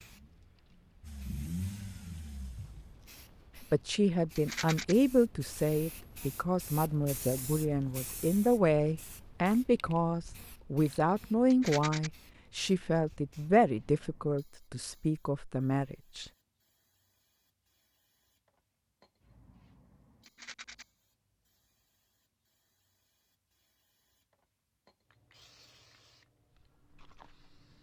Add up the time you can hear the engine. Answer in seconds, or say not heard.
3 s.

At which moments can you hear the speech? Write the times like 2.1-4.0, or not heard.
3.6-16.3.